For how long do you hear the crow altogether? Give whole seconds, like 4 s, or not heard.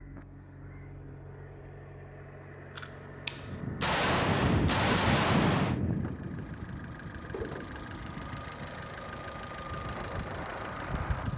not heard.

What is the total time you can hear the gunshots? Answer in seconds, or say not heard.
3 s.